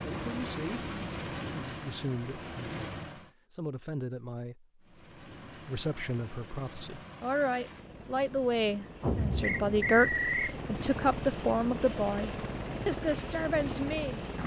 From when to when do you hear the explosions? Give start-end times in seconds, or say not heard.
9.0-10.1.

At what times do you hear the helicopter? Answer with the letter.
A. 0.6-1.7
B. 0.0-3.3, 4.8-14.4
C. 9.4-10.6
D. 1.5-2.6
B.